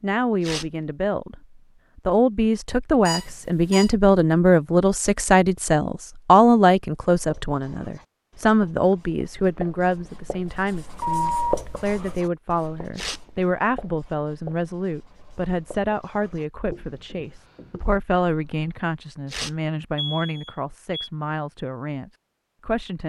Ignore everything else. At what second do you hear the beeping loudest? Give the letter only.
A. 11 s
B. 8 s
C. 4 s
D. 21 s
A.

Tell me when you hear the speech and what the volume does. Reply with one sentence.
You can hear the speech from 0.0 to 23.0 s, getting quieter.